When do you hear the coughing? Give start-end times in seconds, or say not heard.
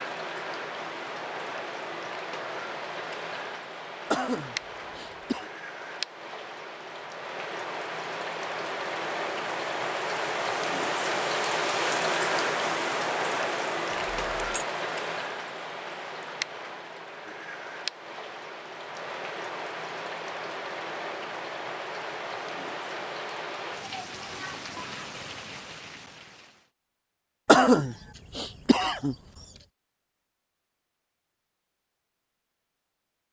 4.1-5.5, 27.4-29.1.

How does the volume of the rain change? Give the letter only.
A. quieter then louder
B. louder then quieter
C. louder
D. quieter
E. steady
B.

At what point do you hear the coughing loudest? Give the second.
28 s.